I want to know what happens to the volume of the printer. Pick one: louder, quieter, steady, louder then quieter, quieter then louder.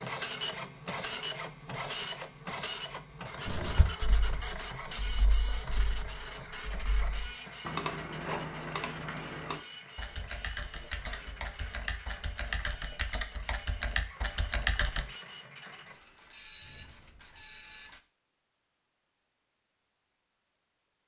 quieter.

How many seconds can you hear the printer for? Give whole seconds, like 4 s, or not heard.
18 s.